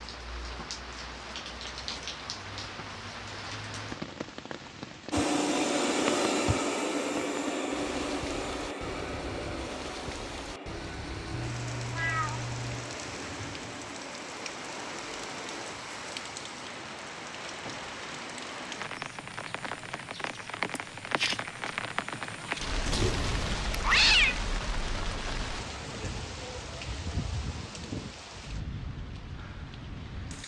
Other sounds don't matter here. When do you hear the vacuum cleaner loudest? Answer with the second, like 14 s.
6 s.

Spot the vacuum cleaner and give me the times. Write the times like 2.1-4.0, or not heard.
5.1-15.8.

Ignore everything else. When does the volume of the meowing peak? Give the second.
24 s.